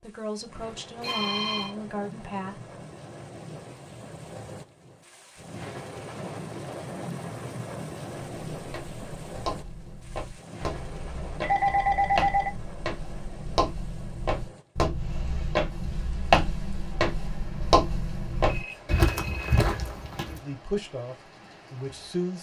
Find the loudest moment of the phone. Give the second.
12 s.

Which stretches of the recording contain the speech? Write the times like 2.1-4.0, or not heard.
0.0-2.6, 20.2-22.3.